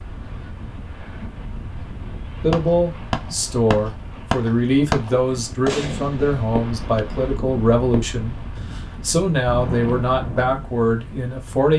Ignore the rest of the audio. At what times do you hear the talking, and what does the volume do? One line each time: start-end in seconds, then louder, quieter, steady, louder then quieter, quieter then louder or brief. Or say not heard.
2.4-11.7 steady.